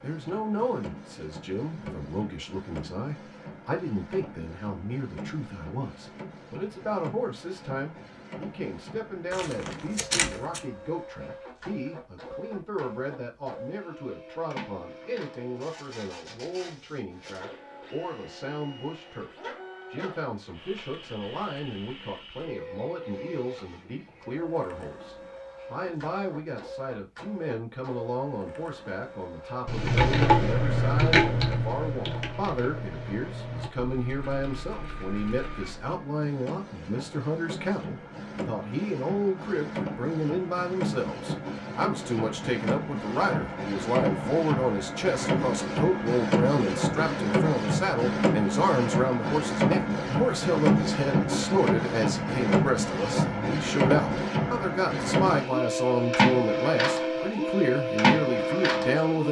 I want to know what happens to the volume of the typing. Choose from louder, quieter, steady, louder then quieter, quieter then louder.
quieter.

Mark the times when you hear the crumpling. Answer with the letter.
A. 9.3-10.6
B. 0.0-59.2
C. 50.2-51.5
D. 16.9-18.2
A.